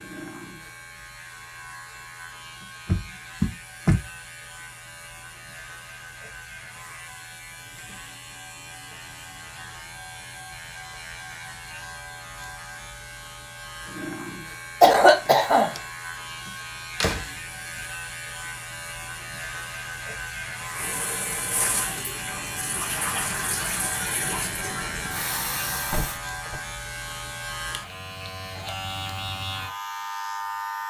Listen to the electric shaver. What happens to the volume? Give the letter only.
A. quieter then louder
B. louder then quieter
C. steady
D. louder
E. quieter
D.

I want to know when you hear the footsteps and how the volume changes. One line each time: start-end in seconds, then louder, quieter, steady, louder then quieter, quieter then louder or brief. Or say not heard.
not heard.